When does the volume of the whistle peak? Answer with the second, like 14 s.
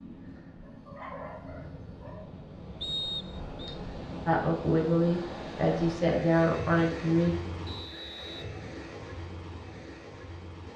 3 s.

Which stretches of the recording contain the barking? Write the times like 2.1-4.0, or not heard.
0.6-2.3.